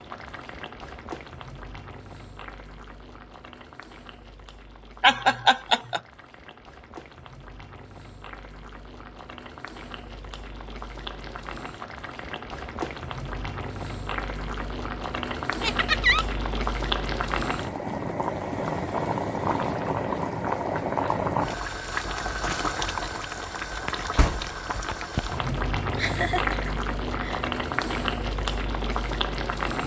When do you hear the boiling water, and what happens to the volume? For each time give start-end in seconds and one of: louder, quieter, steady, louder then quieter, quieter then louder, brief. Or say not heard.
0.0-29.8 louder.